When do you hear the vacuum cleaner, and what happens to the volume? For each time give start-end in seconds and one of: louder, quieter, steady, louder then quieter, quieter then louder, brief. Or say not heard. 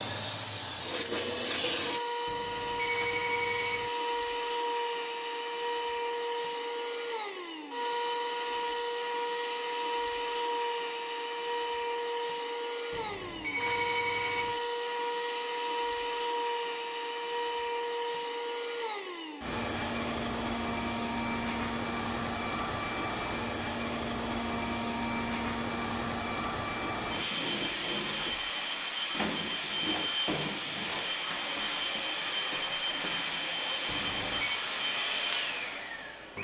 0.0-36.3 steady.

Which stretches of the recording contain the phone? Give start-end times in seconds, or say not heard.
2.2-3.9, 12.9-14.6, 33.9-34.6.